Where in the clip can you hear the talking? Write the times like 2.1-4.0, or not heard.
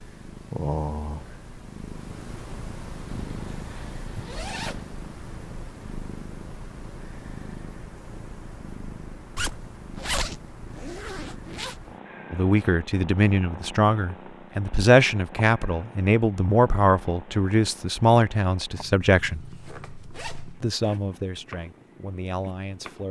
12.3-19.4, 20.6-23.0.